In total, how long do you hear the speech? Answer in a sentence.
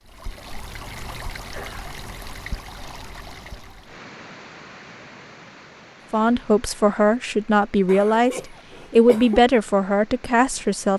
The speech can be heard for 5 seconds in total.